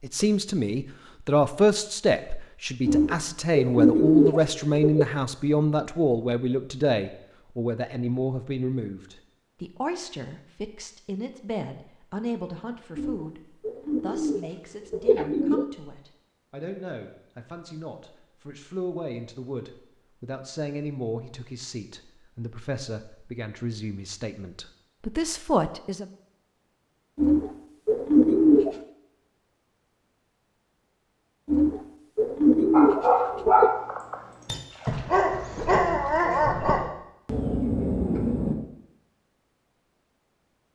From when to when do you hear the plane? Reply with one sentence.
The plane can't be heard in this clip.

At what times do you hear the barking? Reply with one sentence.
The barking can be heard from 32.7 to 38.5 s.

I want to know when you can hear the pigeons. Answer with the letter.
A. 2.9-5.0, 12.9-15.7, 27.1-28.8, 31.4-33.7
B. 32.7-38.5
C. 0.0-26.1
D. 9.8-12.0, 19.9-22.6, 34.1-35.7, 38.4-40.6
A.